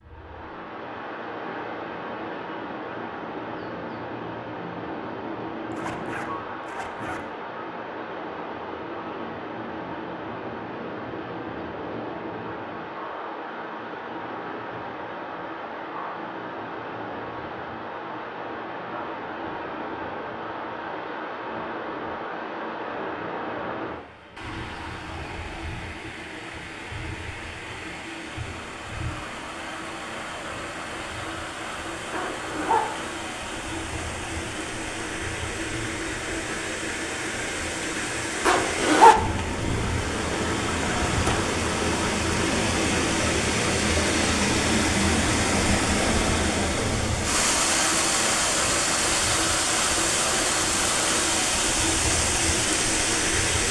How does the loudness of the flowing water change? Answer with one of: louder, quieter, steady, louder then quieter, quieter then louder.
louder.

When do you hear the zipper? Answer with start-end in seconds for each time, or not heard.
5.7-7.2, 32.1-32.9, 38.5-39.2.